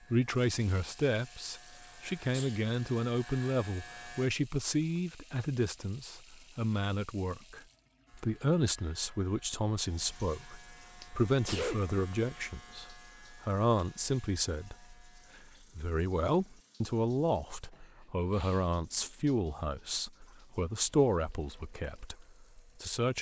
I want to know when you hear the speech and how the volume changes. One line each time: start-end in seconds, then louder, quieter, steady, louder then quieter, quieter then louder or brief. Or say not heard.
0.1-23.1 steady.